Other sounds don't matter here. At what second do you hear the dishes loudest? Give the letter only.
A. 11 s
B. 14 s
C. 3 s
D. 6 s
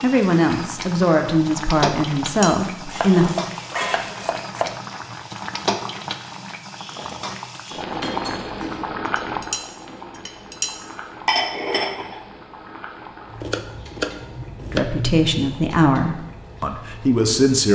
A.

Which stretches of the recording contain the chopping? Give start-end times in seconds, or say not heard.
2.9-4.8, 13.4-15.3.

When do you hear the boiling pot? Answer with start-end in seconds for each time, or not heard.
0.0-17.7.